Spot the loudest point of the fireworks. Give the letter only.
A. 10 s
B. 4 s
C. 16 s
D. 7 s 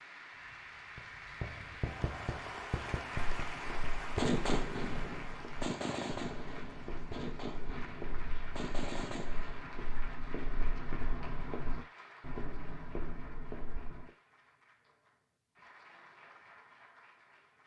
B.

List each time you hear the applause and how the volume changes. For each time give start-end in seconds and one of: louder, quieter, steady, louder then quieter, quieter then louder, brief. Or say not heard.
0.0-17.6 quieter.